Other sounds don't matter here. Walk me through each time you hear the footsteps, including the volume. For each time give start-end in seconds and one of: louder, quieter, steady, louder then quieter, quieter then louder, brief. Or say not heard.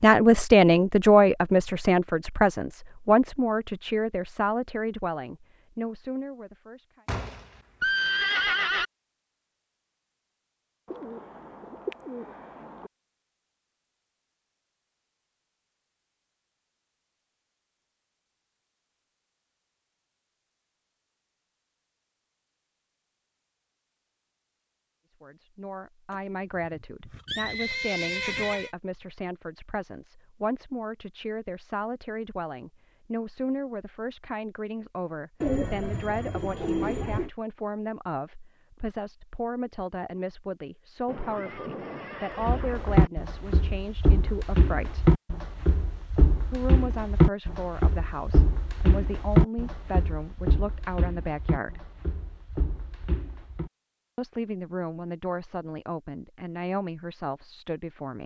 42.4-53.7 quieter.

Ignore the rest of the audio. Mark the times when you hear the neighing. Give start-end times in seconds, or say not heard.
7.0-8.8, 26.1-28.7, 41.0-43.1.